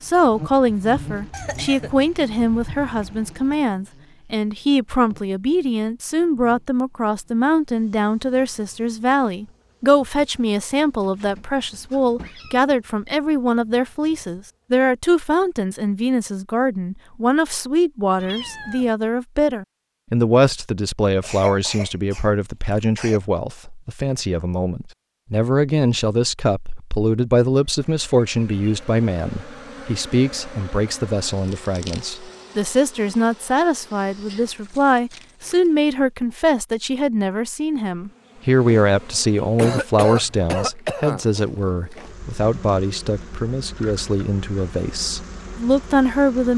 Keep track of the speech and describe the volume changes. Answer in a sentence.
The volume of the speech stays about the same.